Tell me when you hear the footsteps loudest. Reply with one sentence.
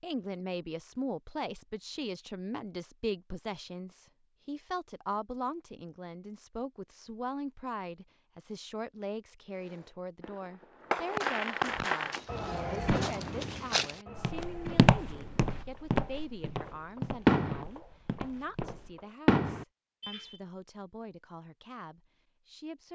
The volume of the footsteps peaks at 15 seconds.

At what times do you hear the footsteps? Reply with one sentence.
You can hear the footsteps from 11.7 to 18.9 s.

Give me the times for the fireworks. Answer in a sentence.
The fireworks can be heard from 9.5 to 20.4 s.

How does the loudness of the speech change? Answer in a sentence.
The loudness of the speech goes down.